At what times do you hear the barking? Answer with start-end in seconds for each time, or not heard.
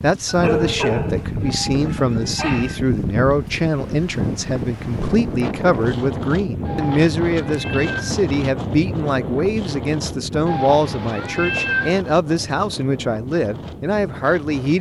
0.2-2.8.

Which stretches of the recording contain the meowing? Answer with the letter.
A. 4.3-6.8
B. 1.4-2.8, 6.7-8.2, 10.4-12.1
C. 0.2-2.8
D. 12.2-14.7
B.